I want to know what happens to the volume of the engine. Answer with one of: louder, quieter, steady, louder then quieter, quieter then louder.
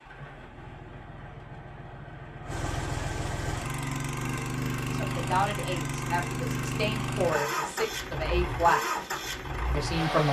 louder.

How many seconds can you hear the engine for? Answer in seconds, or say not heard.
10 s.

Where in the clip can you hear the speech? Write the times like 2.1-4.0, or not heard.
4.9-8.8, 9.7-10.2.